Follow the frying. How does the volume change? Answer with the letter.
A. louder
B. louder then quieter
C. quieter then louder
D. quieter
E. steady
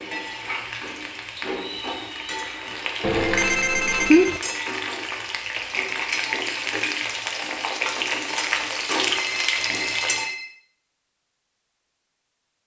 A.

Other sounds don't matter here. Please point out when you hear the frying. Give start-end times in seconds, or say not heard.
0.0-10.3.